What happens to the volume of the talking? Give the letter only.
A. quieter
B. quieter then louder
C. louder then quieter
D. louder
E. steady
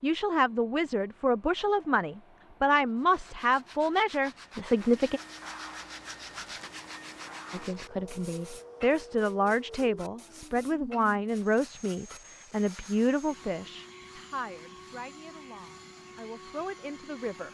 A.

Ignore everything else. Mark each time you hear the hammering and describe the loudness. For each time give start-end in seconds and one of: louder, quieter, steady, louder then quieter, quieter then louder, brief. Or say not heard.
not heard.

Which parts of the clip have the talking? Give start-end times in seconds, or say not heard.
0.0-5.2, 7.5-17.4.